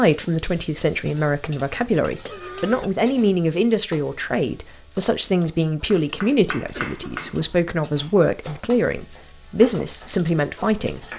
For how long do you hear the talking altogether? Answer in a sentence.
You can hear the talking for 11 seconds altogether.